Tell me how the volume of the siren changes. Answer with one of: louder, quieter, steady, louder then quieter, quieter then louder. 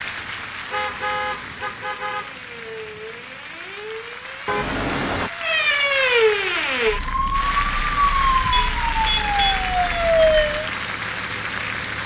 louder.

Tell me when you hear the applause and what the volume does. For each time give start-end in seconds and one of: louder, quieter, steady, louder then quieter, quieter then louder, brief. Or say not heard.
0.0-12.0 louder.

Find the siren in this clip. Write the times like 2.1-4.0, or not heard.
2.3-10.7.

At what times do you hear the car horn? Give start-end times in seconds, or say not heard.
0.7-2.4, 4.5-5.3, 8.5-9.7.